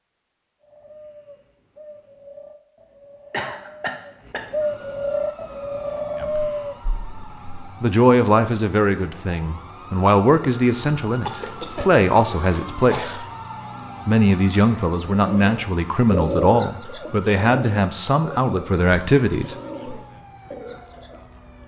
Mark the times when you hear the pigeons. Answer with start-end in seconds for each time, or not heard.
0.6-6.8, 15.2-21.2.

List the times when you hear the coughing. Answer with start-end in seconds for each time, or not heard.
3.3-4.5, 11.2-13.2.